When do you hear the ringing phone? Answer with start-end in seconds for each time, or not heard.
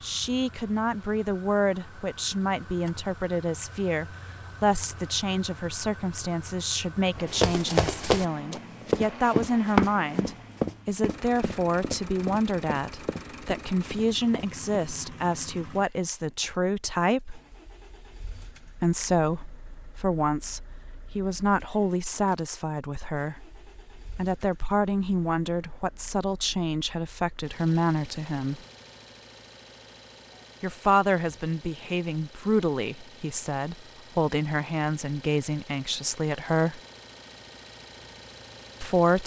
not heard.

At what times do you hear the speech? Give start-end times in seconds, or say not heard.
0.0-17.4, 18.8-28.6, 30.6-36.8, 38.8-39.2.